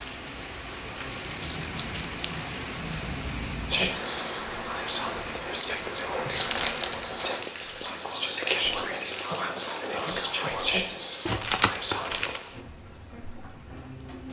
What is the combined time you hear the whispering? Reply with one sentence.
You can hear the whispering for 9 seconds altogether.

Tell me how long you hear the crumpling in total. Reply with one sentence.
The crumpling can be heard for 3 seconds in total.